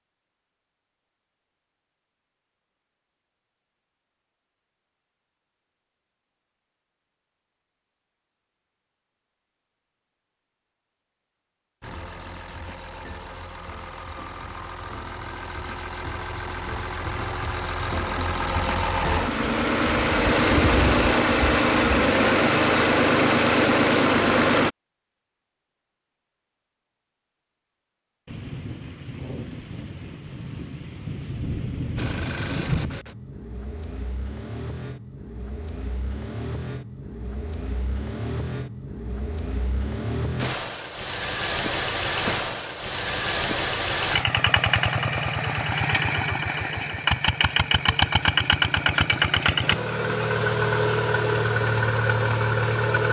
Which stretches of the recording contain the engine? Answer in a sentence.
The engine can be heard from 11.8 to 24.7 s and from 31.9 to 53.0 s.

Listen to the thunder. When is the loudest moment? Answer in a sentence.
The volume of the thunder peaks at 33 seconds.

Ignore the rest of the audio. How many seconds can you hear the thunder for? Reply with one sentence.
The thunder can be heard for 5 seconds in total.